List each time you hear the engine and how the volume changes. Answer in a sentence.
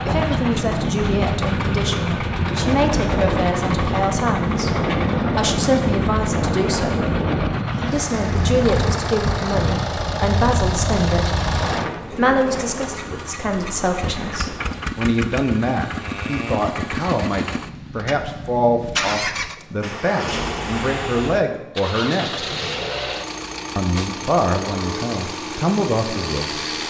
You can hear the engine from 0.0 to 26.8 s, at a steady volume.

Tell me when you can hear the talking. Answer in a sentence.
The talking can be heard from 0.1 to 7.0 s, from 7.9 to 11.3 s, from 12.1 to 22.4 s and from 23.8 to 26.6 s.